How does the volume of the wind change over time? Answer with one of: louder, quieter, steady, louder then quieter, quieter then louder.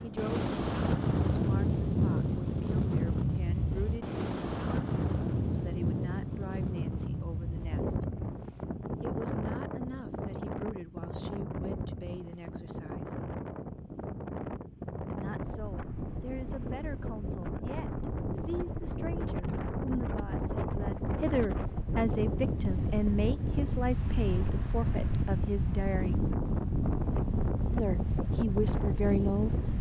quieter then louder.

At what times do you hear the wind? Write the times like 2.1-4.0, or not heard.
0.0-29.7.